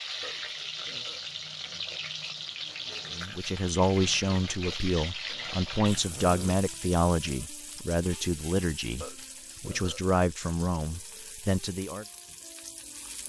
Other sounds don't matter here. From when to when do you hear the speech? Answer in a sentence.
The speech can be heard from 3.1 to 12.1 s.